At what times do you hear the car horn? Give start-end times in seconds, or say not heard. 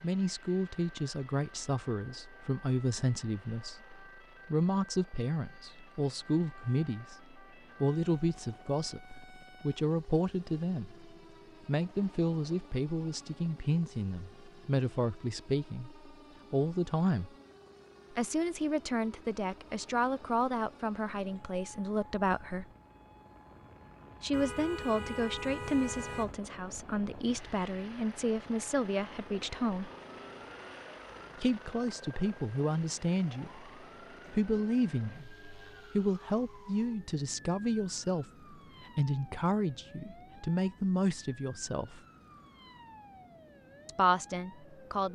24.3-26.4.